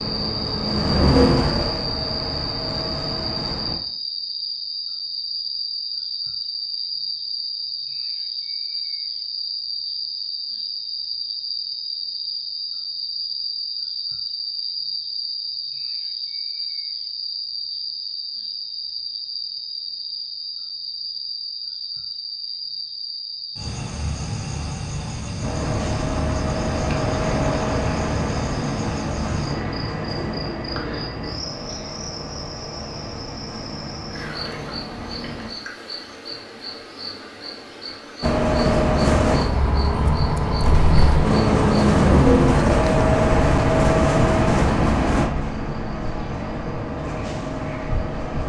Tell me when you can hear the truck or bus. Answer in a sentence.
The truck or bus can be heard from 0.0 to 3.8 s, from 25.4 to 35.5 s and from 38.2 to 48.4 s.